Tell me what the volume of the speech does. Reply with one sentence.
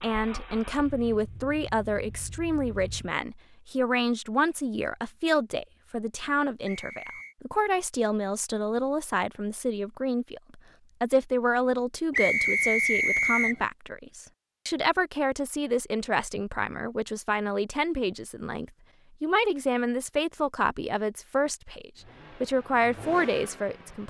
The loudness of the speech stays about the same.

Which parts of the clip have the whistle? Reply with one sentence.
You can hear the whistle from 6.7 to 7.3 s and from 12.1 to 13.6 s.